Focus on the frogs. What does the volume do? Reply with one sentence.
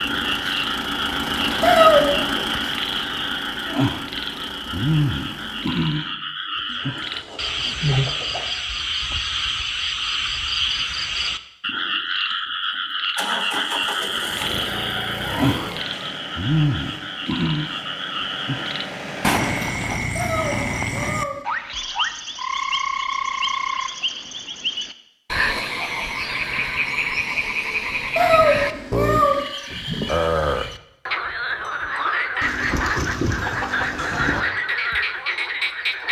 The loudness of the frogs stays about the same.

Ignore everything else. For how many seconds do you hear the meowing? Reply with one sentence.
The meowing can be heard for 3 seconds in total.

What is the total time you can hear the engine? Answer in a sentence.
You can hear the engine for 13 seconds altogether.